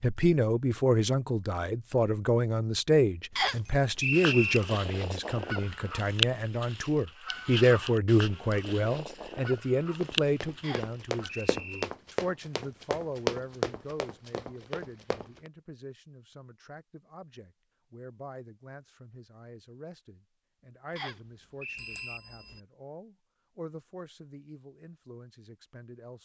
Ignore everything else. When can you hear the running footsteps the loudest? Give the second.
13 s.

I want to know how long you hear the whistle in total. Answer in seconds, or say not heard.
4 s.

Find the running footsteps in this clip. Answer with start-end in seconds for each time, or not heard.
10.0-15.5.